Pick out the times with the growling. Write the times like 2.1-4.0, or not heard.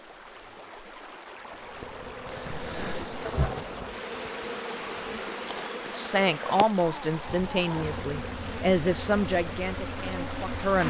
2.5-3.6, 6.8-8.1.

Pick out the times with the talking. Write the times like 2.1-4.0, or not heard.
5.8-10.8.